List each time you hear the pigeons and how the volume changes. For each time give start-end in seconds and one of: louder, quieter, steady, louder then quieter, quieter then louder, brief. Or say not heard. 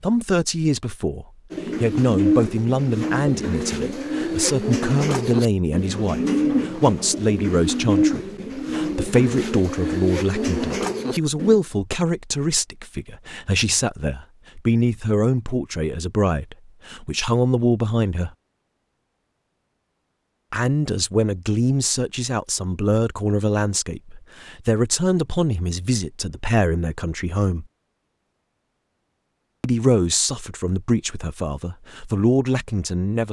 1.5-11.6 steady.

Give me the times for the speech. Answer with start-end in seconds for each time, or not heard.
0.0-18.3, 20.5-27.6, 29.6-33.2.